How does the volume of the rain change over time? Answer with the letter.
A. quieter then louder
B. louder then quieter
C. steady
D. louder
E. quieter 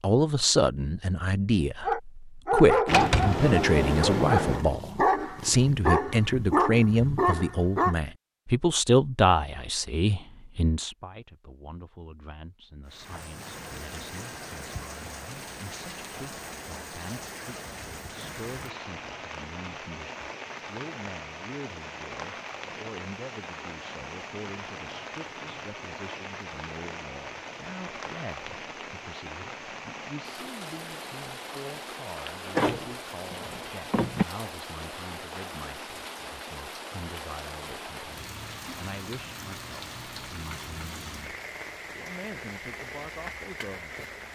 C.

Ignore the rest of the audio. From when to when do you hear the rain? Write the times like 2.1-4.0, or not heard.
12.8-44.3.